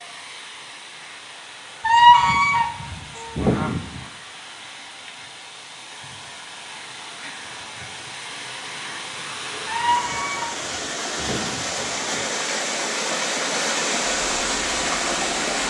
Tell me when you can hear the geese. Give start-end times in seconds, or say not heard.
1.8-4.0, 9.7-12.2.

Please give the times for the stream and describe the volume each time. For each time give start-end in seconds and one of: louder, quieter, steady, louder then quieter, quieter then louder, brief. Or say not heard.
0.0-15.6 louder.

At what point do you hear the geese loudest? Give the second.
2 s.